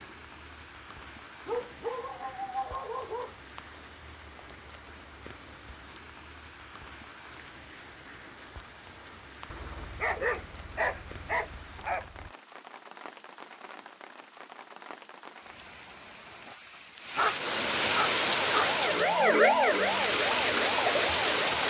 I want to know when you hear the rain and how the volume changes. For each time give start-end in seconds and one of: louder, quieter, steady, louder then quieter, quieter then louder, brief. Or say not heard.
0.0-21.6 louder.